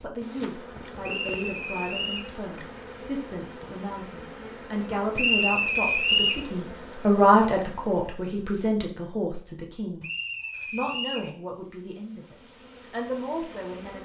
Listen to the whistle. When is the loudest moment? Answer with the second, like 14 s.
6 s.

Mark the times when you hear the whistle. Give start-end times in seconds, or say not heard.
1.0-2.3, 5.2-6.5, 10.0-11.3.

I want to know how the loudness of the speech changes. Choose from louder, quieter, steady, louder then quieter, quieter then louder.
louder then quieter.